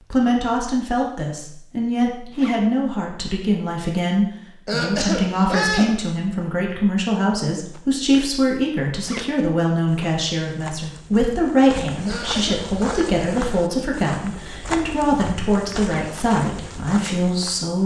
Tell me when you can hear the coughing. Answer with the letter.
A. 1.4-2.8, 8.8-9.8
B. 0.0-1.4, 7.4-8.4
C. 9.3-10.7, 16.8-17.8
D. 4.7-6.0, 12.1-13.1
D.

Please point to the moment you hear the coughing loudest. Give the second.
6 s.